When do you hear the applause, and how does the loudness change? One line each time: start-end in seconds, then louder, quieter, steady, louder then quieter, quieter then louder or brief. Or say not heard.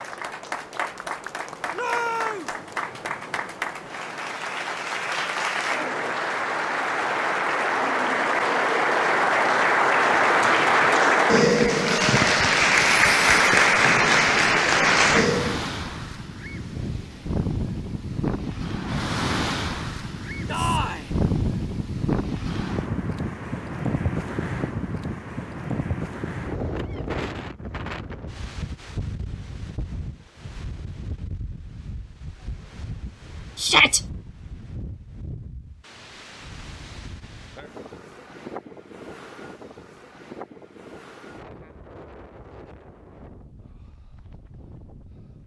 0.0-15.6 louder.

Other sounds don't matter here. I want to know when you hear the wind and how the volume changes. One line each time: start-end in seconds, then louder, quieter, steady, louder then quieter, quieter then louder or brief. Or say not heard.
0.0-45.4 louder then quieter.